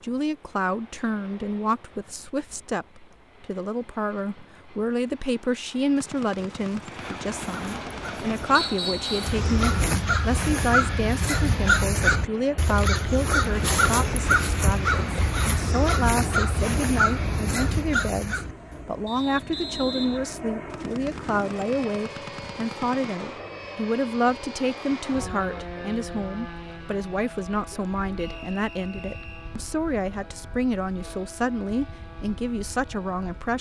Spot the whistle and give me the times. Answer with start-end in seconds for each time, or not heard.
8.6-9.3, 19.1-20.4, 28.1-29.6.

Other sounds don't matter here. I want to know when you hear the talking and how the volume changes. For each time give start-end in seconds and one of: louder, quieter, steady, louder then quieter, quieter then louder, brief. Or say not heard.
0.0-33.5 steady.